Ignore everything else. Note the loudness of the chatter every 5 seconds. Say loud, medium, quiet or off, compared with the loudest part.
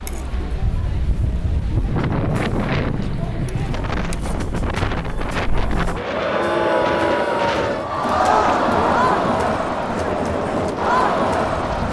quiet, loud, loud.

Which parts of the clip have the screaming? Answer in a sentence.
The screaming can't be heard in this clip.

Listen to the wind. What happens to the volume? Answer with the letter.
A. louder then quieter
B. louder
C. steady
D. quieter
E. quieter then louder
C.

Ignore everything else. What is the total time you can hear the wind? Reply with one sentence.
The wind can be heard for 12 seconds in total.